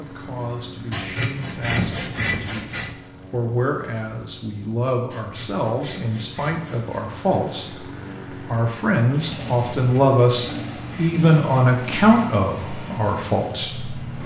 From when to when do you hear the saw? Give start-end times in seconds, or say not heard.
0.9-2.9, 5.1-7.0, 9.8-12.3.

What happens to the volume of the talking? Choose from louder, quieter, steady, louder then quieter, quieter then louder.
louder.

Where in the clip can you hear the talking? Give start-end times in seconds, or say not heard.
0.0-14.2.